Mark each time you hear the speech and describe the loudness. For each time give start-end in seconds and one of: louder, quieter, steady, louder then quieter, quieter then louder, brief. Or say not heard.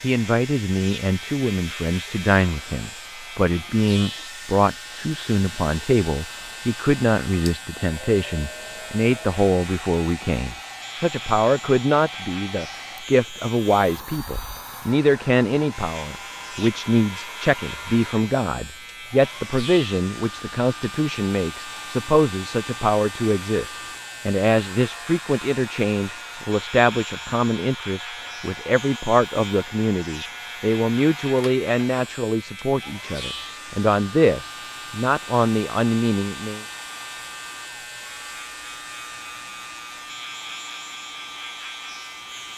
0.0-36.6 steady.